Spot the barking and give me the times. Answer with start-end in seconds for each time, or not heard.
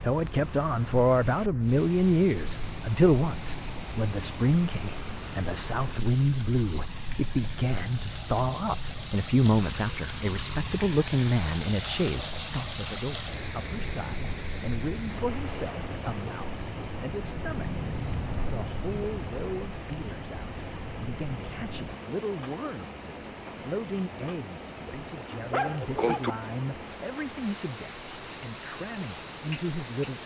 25.5-26.4.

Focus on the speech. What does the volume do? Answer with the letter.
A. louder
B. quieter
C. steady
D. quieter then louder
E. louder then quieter
B.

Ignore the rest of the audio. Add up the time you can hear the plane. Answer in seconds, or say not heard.
not heard.